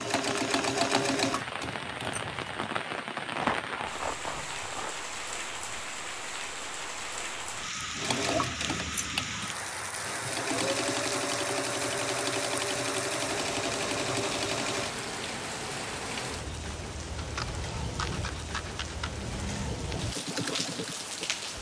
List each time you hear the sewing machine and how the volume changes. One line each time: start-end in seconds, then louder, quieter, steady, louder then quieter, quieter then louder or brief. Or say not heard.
0.0-2.6 brief
8.0-14.9 steady
19.2-21.5 brief.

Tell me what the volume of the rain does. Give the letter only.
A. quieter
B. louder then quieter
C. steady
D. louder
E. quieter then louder
C.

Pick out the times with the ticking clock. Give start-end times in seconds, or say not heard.
not heard.